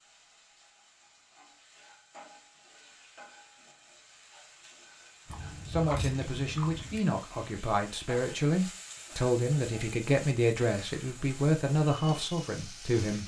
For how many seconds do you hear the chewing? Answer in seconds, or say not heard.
2 s.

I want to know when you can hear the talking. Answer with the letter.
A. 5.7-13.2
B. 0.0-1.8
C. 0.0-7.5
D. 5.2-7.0
A.